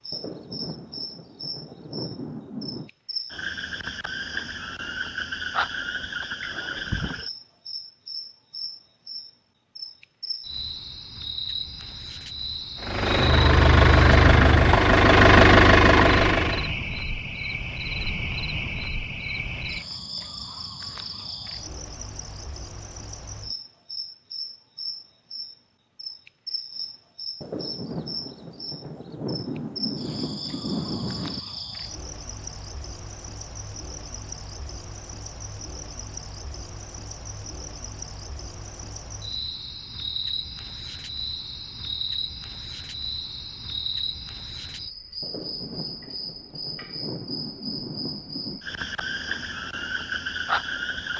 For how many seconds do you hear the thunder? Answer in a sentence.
You can hear the thunder for 10 seconds altogether.